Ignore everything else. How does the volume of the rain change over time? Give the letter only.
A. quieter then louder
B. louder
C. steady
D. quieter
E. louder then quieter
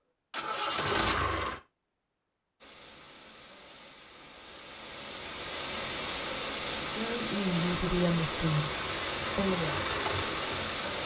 B.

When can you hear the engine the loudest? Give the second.
1 s.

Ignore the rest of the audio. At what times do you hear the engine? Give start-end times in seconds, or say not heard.
0.3-1.6, 7.5-11.0.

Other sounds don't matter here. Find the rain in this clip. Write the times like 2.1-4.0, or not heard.
2.6-11.0.